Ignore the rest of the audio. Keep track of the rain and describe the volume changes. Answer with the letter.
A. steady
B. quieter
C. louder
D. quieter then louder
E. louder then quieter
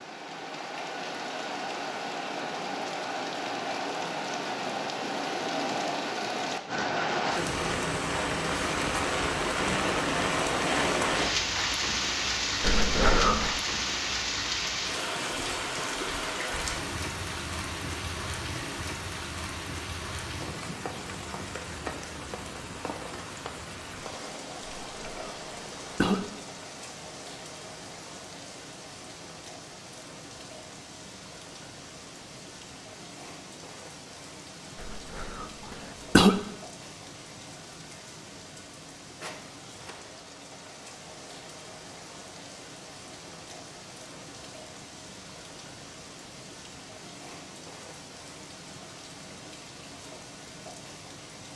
B.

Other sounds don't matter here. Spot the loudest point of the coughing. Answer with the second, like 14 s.
36 s.